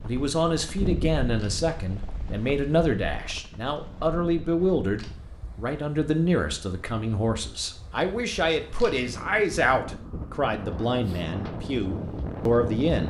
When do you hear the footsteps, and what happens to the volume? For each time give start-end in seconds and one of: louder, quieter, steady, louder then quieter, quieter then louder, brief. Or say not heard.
not heard.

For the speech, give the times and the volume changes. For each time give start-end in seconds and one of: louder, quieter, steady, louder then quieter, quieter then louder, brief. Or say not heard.
0.0-13.0 steady.